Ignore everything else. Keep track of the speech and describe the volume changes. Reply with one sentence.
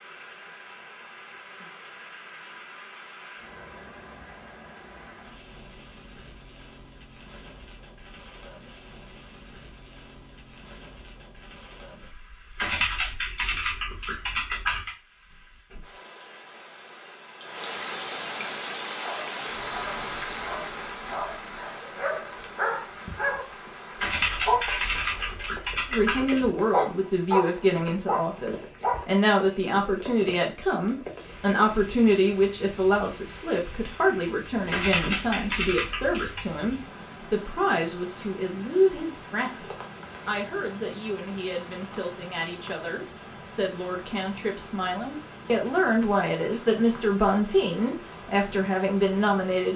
The loudness of the speech goes down, then up.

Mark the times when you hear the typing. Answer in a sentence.
You can hear the typing from 12.6 to 14.9 s, from 23.9 to 26.4 s and from 34.6 to 36.5 s.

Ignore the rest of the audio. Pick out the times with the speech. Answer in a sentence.
The speech can be heard from 25.9 to 49.7 s.